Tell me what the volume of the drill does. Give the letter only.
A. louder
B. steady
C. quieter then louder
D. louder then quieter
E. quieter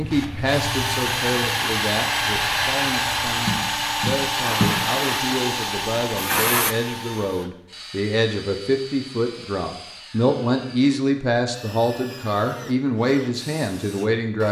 E.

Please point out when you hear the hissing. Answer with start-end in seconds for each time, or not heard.
0.0-6.8.